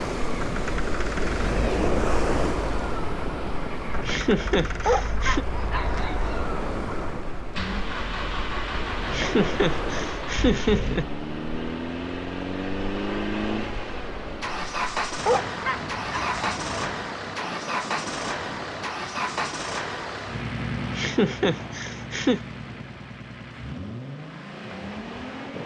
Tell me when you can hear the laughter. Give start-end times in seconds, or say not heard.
4.0-5.5, 9.1-11.1, 20.9-22.4.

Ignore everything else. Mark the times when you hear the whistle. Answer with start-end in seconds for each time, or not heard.
not heard.